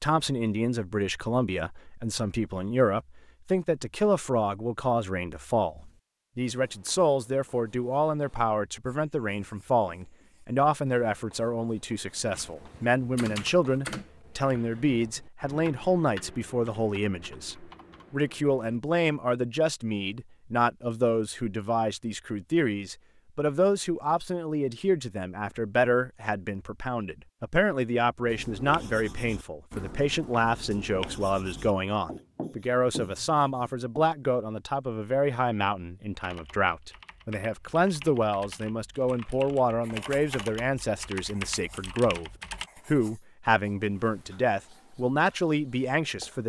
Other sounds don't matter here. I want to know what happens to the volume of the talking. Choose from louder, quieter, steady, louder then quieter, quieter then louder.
steady.